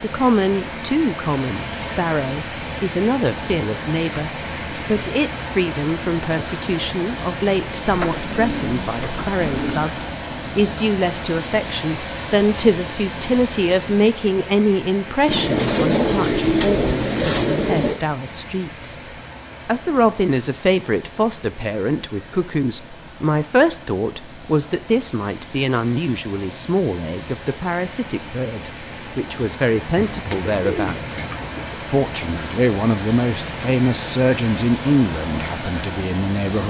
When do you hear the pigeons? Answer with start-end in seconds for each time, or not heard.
7.8-9.8, 15.2-18.0, 29.9-31.8.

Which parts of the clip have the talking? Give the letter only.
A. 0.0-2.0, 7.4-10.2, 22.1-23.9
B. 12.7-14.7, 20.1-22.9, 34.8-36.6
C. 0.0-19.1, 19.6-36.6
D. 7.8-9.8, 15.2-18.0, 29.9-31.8
C.